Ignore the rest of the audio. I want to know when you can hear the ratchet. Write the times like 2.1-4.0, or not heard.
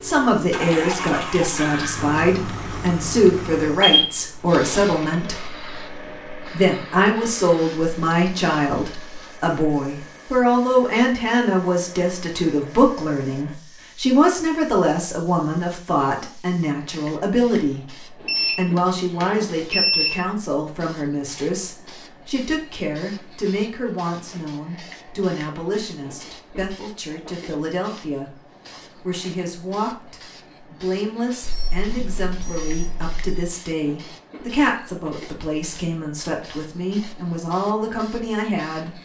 not heard.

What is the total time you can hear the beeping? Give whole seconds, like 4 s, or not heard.
5 s.